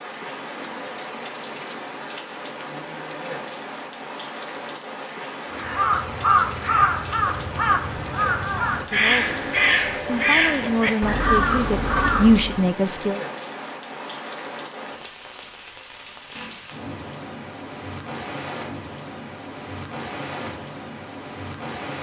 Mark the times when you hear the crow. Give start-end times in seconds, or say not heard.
5.5-12.7.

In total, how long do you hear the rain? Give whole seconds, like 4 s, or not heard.
22 s.